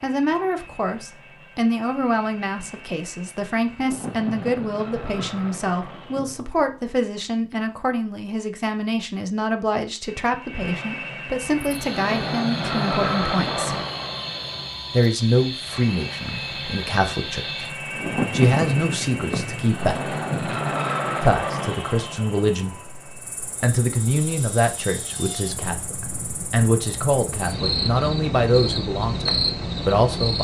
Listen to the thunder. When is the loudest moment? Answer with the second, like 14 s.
18 s.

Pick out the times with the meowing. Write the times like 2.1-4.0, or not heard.
not heard.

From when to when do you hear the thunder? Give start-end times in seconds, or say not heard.
3.8-6.8, 17.9-20.6.